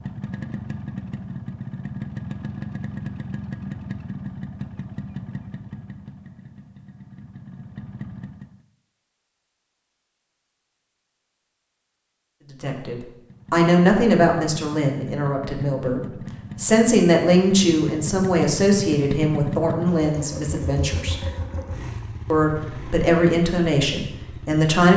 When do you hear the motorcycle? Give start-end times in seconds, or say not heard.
0.0-8.7, 13.2-24.6.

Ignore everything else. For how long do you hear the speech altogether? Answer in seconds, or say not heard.
11 s.